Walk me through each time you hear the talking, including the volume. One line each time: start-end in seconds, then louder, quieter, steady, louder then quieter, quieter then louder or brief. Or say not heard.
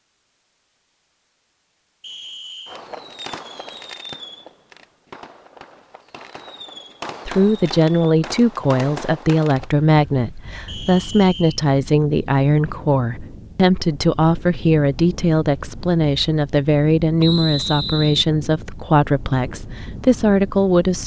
7.2-21.0 steady.